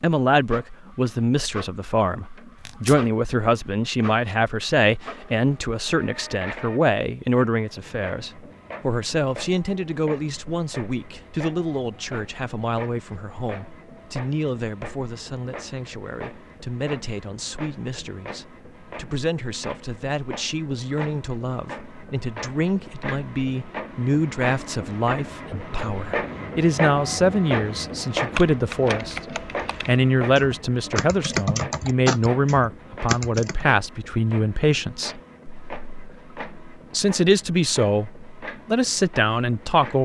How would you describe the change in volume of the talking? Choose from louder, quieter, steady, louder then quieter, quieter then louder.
quieter then louder.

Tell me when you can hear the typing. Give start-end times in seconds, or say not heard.
28.1-33.6.